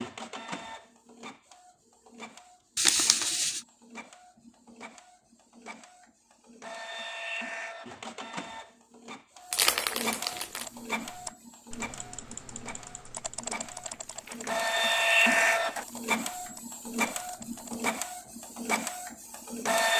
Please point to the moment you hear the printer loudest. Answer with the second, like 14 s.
15 s.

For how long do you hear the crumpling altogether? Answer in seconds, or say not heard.
3 s.